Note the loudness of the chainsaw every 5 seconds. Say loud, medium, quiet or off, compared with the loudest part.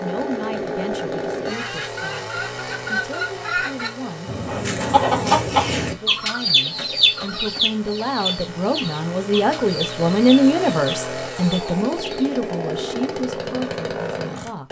loud, medium, loud.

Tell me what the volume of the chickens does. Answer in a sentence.
The volume of the chickens goes up, then down.